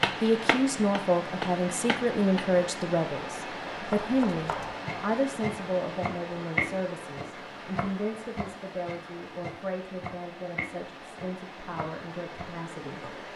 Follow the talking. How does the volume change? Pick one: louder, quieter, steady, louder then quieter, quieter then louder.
quieter.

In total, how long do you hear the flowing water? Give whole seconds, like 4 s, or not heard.
13 s.